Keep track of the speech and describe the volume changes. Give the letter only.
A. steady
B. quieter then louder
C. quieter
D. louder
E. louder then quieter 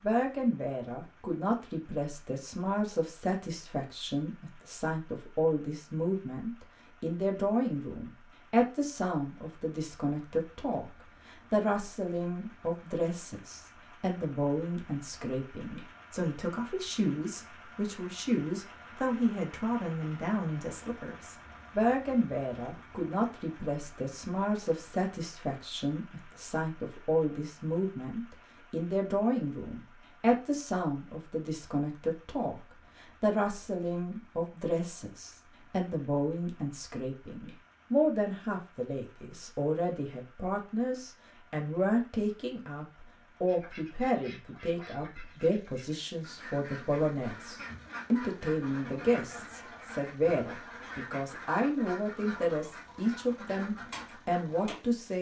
A.